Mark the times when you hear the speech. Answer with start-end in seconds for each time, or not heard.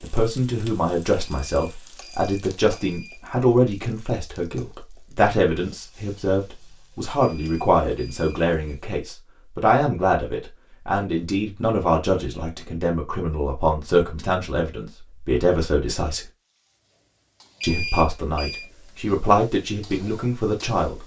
0.0-16.2, 17.6-21.0.